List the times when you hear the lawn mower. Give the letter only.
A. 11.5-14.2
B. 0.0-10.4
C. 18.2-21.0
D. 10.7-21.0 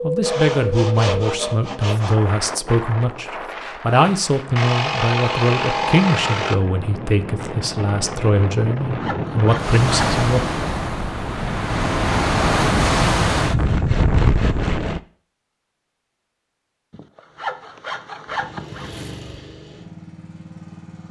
C.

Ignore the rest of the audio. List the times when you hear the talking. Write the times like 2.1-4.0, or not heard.
0.0-10.4.